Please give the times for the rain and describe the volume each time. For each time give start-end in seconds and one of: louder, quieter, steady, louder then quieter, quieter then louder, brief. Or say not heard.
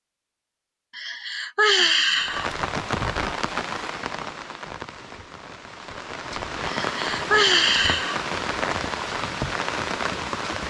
2.2-10.6 quieter then louder.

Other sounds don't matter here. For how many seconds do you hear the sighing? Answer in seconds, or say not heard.
3 s.